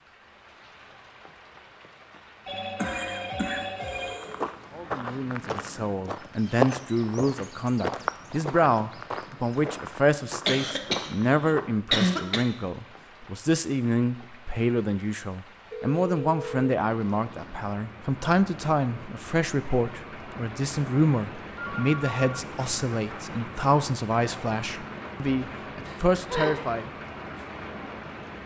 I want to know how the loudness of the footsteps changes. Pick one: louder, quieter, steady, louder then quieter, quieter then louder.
louder then quieter.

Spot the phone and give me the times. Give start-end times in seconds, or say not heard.
2.5-4.2, 15.7-16.7, 21.6-22.4.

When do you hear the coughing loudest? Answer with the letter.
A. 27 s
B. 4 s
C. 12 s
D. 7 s
C.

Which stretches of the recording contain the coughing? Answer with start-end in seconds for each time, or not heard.
2.8-4.5, 10.4-12.4, 25.9-26.6.